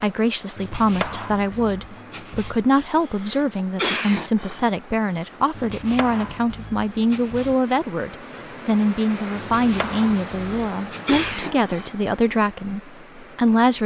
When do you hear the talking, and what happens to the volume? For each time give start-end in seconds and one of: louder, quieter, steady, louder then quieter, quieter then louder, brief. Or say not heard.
0.0-13.8 steady.